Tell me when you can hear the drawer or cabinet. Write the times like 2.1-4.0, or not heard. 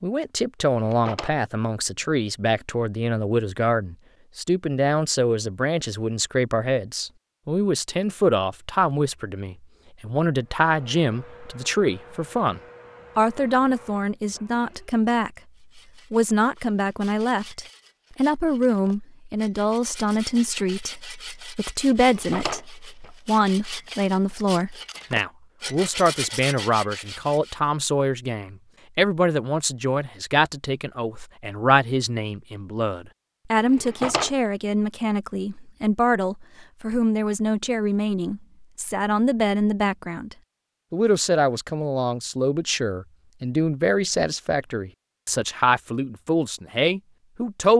0.7-1.4, 21.9-23.1, 33.6-34.4.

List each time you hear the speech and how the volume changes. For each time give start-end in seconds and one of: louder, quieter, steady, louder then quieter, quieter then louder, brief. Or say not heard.
0.0-15.4 steady
16.1-47.7 steady.